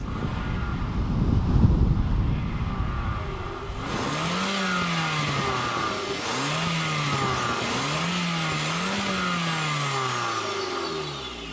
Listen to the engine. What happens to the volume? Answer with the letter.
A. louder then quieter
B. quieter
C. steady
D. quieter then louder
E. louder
E.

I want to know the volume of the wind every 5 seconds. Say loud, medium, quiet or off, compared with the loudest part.
loud, medium, off.